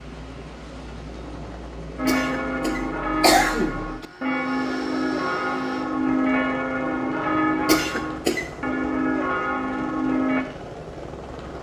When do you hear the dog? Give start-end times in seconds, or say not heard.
not heard.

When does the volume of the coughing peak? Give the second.
3 s.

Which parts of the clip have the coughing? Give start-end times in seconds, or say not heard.
2.0-4.0, 7.7-8.5.